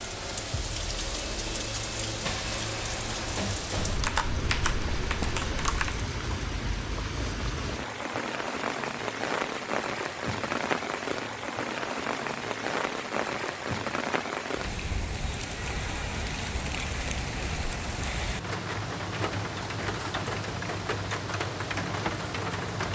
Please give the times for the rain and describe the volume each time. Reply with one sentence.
The rain can be heard from 0.0 to 22.8 s, at a steady volume.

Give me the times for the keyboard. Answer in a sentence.
The keyboard can be heard from 3.8 to 6.0 s.